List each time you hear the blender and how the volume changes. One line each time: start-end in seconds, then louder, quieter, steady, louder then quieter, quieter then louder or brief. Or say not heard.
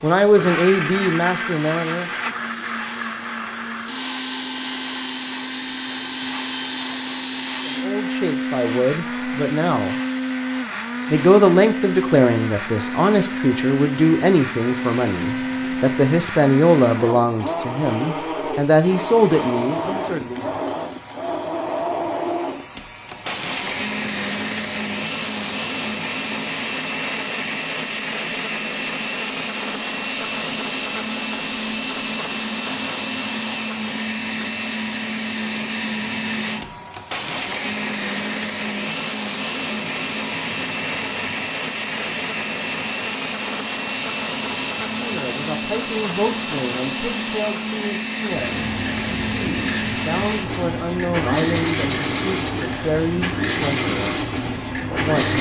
0.2-55.3 steady.